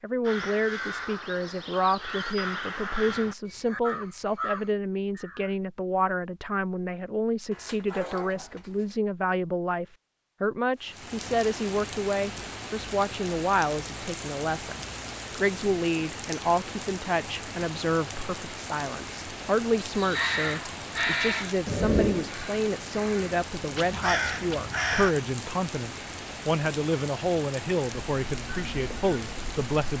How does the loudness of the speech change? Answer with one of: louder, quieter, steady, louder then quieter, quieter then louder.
steady.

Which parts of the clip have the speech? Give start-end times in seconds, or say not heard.
0.0-29.9.